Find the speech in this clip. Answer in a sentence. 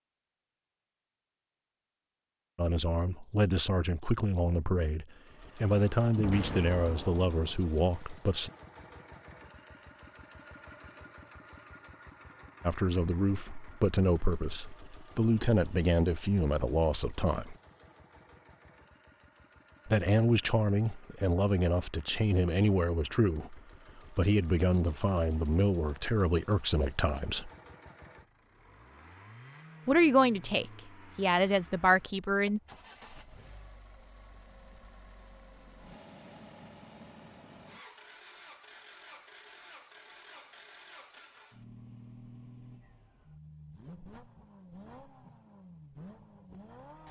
You can hear the speech from 2.5 to 8.5 s, from 12.7 to 17.6 s, from 19.9 to 27.5 s and from 29.9 to 32.6 s.